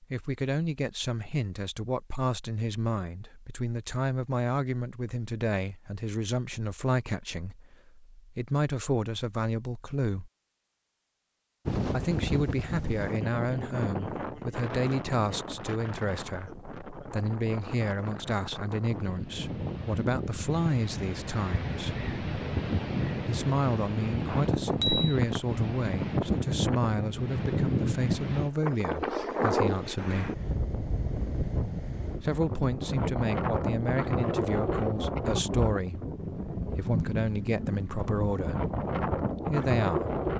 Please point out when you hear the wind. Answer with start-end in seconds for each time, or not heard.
11.7-40.3.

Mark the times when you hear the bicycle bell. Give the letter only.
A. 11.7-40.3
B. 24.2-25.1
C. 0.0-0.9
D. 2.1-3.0
B.